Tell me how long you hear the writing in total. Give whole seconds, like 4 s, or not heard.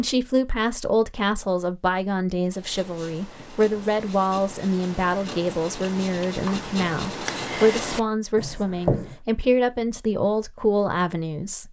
7 s.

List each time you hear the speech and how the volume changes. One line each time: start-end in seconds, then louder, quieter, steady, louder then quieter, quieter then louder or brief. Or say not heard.
0.0-11.6 steady.